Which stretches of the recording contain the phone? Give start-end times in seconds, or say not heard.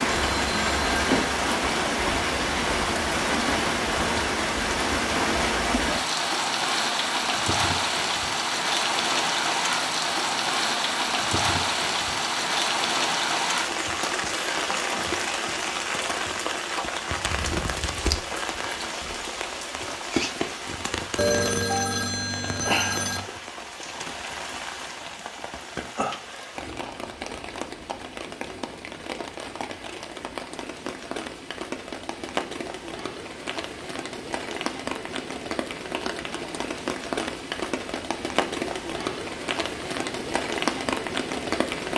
0.1-1.4, 21.1-23.2.